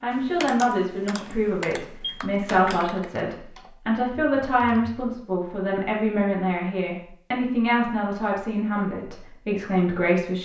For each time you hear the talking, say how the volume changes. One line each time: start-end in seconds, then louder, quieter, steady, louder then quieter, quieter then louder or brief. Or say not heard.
0.0-10.3 steady.